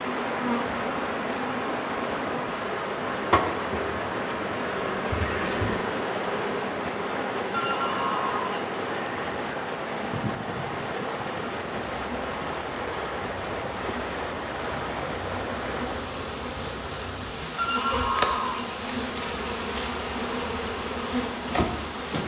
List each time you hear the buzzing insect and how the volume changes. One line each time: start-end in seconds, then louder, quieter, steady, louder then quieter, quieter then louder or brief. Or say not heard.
0.0-22.2 quieter then louder.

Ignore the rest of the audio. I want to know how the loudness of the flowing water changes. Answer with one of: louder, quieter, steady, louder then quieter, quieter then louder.
steady.